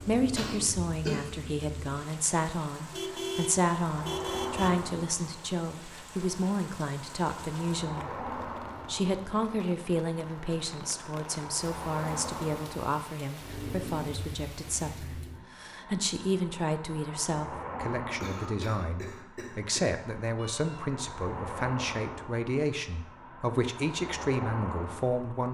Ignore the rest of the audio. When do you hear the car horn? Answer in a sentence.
You can hear the car horn from 2.9 to 4.8 s and from 20.4 to 20.9 s.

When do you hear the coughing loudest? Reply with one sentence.
The loudest moment of the coughing is at 1 second.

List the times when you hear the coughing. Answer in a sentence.
You can hear the coughing from 0.3 to 1.2 s and from 18.2 to 19.9 s.